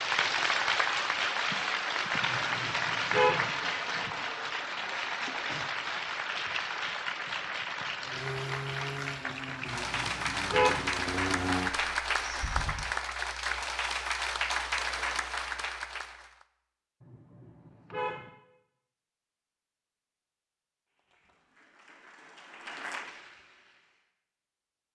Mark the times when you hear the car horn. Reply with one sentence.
You can hear the car horn from 2.2 to 3.5 s, from 9.6 to 10.9 s and from 17.0 to 18.3 s.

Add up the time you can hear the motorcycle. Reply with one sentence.
You can hear the motorcycle for 5 seconds altogether.